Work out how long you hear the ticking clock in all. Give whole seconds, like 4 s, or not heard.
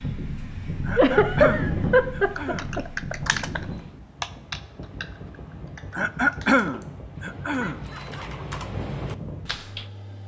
not heard.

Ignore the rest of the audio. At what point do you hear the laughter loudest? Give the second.
1 s.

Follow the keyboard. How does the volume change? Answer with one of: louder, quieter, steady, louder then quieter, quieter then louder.
quieter then louder.